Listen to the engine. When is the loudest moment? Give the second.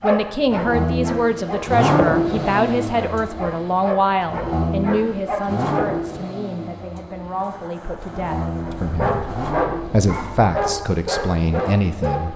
2 s.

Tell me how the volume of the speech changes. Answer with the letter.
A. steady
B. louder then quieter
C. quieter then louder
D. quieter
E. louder
C.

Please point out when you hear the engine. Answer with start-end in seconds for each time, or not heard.
0.2-12.3.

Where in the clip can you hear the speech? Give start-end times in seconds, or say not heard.
0.0-12.3.